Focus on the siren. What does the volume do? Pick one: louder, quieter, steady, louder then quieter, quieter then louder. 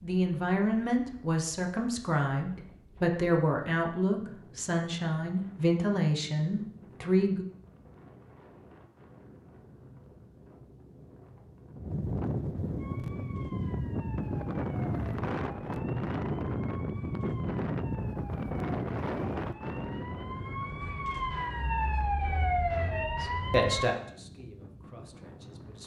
louder.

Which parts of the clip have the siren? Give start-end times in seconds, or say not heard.
12.8-23.9.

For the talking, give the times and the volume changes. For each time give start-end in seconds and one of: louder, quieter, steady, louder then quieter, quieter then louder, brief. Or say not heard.
0.0-7.5 steady
23.2-25.8 brief.